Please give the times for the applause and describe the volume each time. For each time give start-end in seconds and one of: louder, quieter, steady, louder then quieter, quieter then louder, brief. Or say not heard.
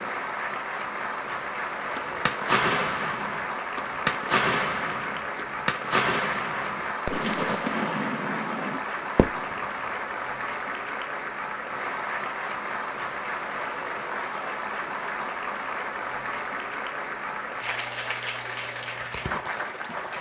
0.0-20.1 steady.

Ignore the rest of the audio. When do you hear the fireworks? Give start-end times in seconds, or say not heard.
1.9-9.7.